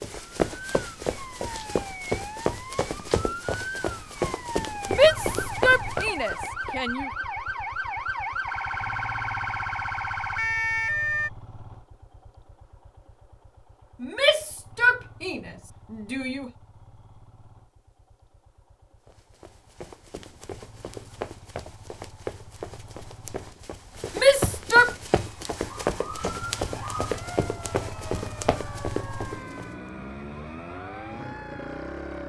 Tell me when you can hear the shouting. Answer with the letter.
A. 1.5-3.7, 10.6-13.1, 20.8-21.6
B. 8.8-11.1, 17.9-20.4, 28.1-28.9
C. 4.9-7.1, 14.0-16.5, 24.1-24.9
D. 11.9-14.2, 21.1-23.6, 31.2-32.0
C.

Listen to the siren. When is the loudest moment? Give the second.
11 s.